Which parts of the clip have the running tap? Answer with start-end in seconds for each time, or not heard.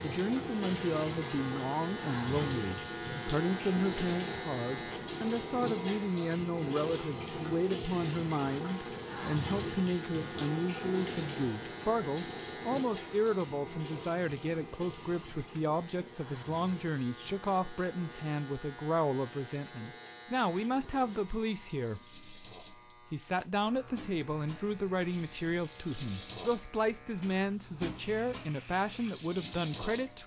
0.0-30.2.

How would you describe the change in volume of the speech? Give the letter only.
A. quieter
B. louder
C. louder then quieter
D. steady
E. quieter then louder
D.